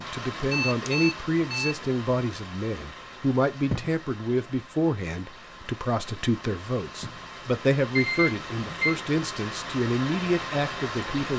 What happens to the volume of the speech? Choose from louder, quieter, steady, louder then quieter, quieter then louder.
steady.